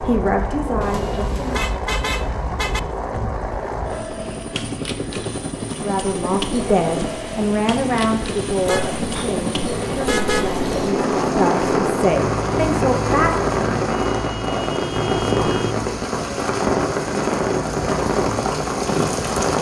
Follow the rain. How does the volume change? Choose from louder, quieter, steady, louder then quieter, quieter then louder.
louder.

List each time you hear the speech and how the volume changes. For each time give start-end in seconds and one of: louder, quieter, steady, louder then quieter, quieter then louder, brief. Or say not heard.
0.0-1.6 brief
5.7-13.5 quieter then louder.